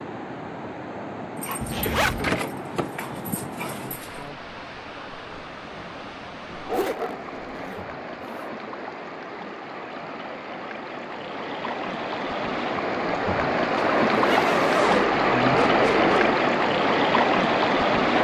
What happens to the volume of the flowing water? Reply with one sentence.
The loudness of the flowing water goes up.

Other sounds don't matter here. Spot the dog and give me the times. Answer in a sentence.
The dog can be heard from 1.4 to 4.2 s, from 6.7 to 7.8 s and from 14.8 to 16.4 s.